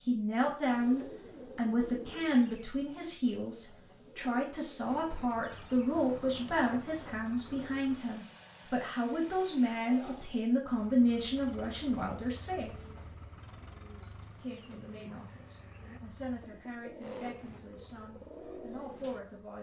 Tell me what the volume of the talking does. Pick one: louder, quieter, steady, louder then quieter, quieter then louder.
quieter.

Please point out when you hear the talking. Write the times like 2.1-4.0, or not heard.
0.0-12.8, 14.4-19.5.